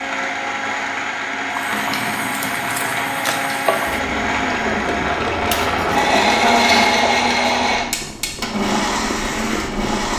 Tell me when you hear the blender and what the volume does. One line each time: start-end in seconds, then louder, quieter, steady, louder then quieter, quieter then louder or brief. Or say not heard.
0.0-10.1 louder then quieter.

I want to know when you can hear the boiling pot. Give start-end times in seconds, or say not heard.
1.5-10.1.